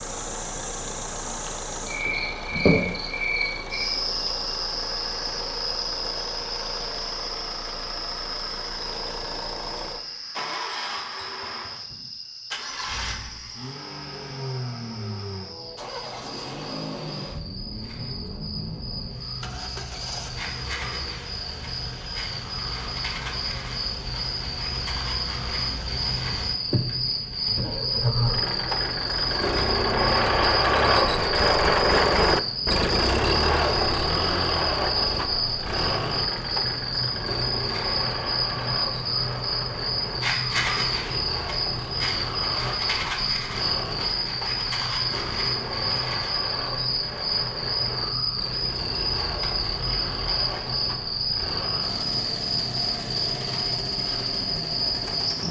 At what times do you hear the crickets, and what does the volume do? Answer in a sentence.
The crickets can be heard from 0.0 to 55.4 s, getting quieter then louder.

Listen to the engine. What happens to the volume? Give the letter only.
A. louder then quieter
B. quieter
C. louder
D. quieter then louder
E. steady
A.